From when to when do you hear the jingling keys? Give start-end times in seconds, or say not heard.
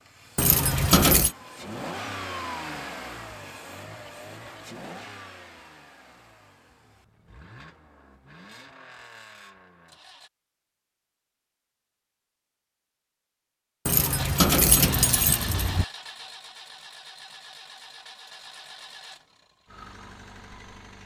0.3-1.4, 13.8-15.8.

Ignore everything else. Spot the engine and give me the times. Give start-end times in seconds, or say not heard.
0.0-10.3, 14.2-21.0.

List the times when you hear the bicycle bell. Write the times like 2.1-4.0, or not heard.
not heard.